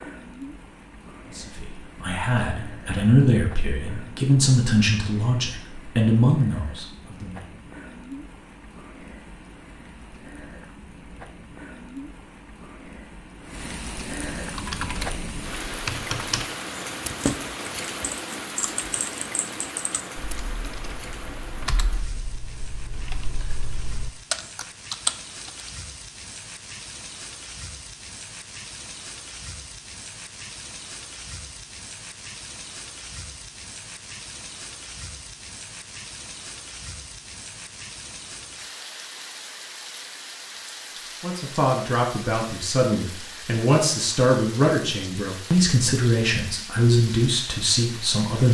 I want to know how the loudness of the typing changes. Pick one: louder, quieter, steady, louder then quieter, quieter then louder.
quieter then louder.